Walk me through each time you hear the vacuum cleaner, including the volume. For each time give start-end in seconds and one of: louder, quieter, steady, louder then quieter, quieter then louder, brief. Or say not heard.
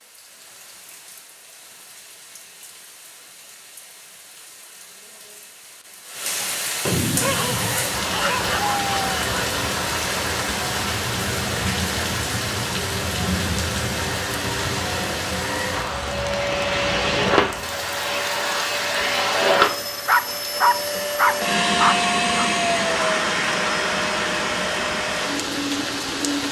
7.1-26.4 louder.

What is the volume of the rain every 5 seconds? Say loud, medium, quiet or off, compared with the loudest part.
quiet, loud, loud, medium, medium, loud.